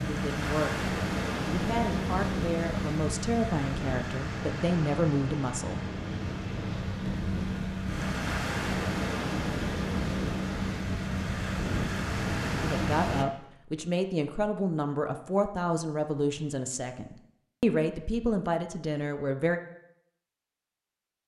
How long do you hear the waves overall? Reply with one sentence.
You can hear the waves for 13 seconds altogether.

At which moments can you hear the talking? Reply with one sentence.
The talking can be heard from 0.0 to 0.8 s, from 1.4 to 5.8 s and from 12.6 to 19.6 s.